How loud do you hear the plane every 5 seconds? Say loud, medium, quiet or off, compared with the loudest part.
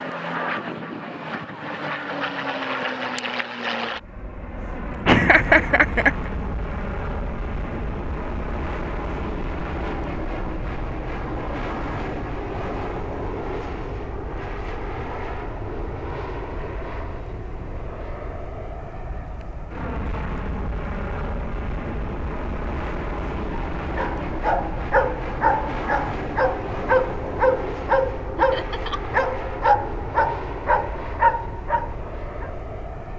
loud, loud, loud, medium, loud, loud, medium.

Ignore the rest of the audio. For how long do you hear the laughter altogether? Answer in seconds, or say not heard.
2 s.